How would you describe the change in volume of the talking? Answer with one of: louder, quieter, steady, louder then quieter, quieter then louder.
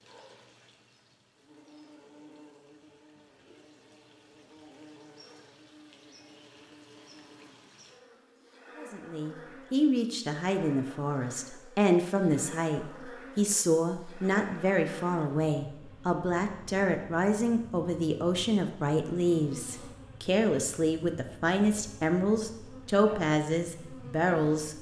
steady.